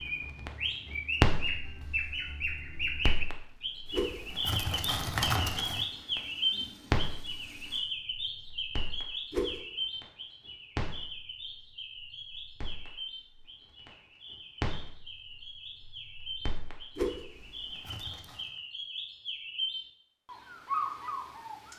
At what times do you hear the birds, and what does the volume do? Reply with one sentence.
You can hear the birds from 0.0 to 21.7 s, getting quieter then louder.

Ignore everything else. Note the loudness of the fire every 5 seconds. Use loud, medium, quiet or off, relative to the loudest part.
loud, loud, medium, quiet, off.